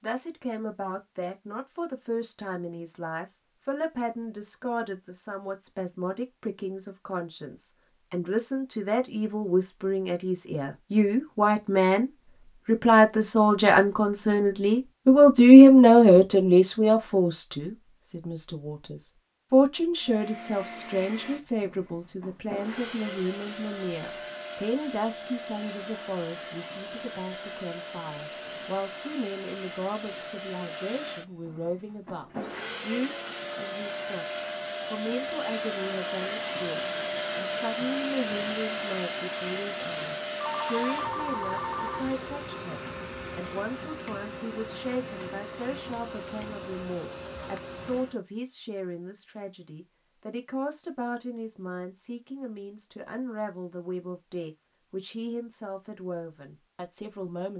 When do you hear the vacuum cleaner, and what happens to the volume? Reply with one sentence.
You can hear the vacuum cleaner from 20.0 to 48.2 s, getting louder then quieter.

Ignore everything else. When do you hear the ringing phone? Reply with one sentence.
The ringing phone can be heard from 40.4 to 42.0 s.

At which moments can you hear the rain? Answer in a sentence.
The rain can't be heard in this clip.